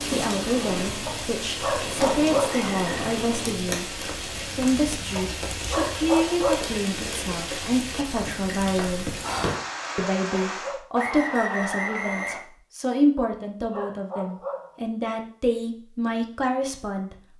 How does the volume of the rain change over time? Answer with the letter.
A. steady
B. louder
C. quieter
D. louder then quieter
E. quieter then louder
A.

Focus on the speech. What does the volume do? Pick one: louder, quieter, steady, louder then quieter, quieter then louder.
steady.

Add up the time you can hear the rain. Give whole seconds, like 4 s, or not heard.
11 s.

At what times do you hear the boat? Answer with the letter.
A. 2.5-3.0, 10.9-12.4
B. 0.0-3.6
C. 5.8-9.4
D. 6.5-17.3
B.